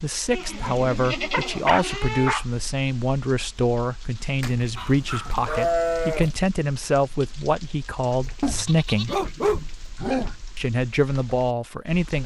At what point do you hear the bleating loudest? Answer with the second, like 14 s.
6 s.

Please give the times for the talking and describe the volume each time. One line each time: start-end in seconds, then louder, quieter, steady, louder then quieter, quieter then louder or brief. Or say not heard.
0.0-9.2 steady
10.6-12.2 brief.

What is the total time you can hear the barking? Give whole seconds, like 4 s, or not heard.
6 s.